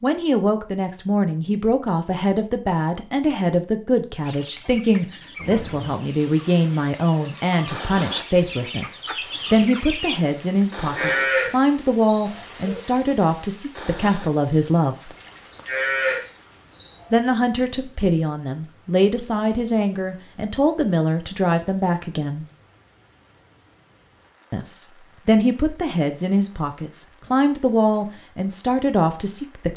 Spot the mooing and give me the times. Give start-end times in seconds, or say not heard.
10.8-12.8, 15.5-17.1.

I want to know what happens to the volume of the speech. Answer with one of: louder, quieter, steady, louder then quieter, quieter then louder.
steady.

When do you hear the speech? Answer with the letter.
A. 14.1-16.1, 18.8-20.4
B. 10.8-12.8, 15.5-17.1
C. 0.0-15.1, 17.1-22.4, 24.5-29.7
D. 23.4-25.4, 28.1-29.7
C.